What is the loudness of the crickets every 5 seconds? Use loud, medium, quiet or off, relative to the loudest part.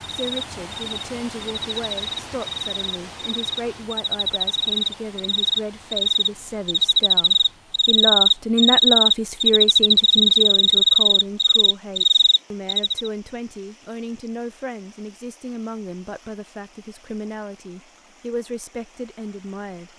medium, loud, loud, off.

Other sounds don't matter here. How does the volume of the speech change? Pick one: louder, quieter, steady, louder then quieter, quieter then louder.
louder then quieter.